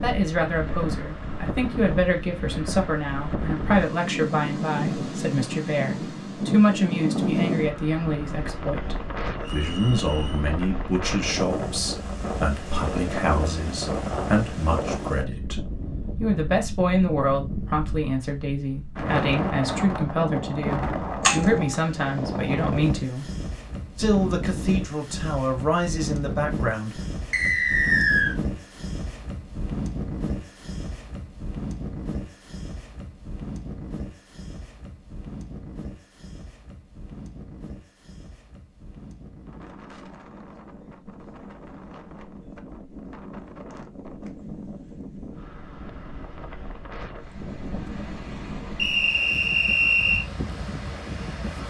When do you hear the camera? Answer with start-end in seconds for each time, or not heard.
21.2-21.8.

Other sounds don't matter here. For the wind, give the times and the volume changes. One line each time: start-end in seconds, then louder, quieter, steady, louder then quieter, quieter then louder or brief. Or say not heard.
0.0-51.6 quieter.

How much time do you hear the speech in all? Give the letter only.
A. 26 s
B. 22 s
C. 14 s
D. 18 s
A.